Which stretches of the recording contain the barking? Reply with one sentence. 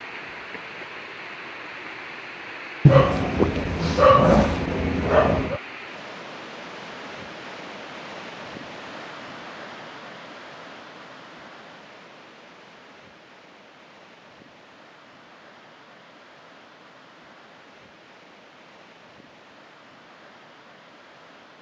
You can hear the barking from 2.9 to 5.6 s.